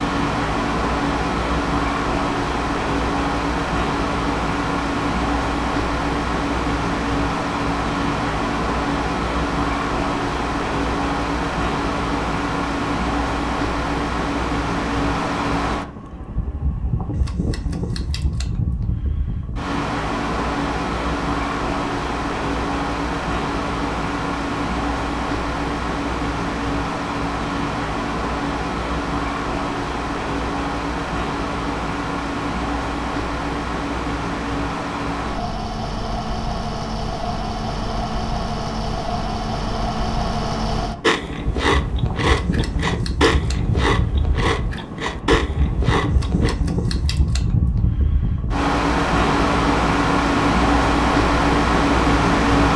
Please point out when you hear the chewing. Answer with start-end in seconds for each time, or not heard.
41.0-46.5.